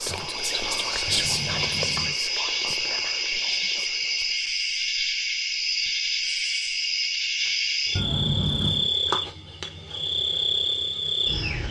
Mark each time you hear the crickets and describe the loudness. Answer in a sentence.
The crickets can be heard from 0.0 to 11.6 s, at a steady volume.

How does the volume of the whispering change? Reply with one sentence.
The loudness of the whispering goes down.